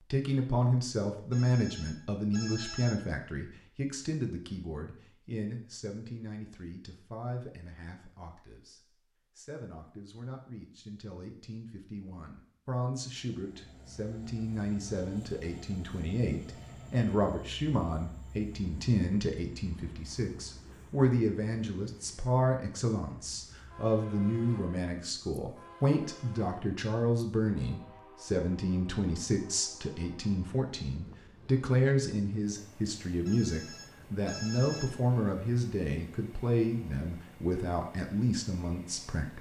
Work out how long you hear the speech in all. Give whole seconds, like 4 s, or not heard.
39 s.